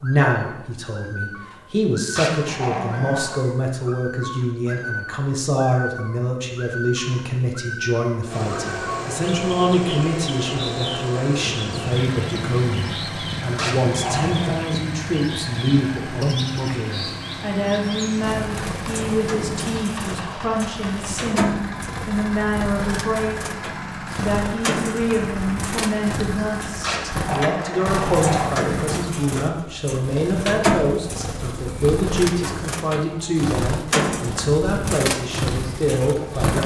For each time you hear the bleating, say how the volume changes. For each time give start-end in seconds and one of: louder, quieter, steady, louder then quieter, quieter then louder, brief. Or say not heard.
not heard.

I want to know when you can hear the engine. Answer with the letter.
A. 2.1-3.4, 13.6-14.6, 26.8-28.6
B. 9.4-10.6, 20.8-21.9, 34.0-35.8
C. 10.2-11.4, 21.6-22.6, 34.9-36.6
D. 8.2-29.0
D.